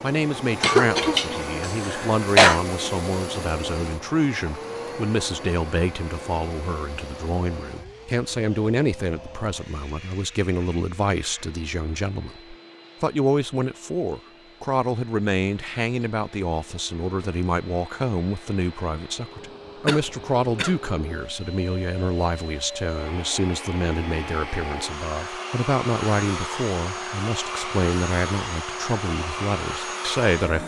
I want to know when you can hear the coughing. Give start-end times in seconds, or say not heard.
0.6-2.6, 19.9-20.8.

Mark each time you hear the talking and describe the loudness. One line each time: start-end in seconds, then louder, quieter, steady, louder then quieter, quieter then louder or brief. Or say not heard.
0.0-30.6 steady.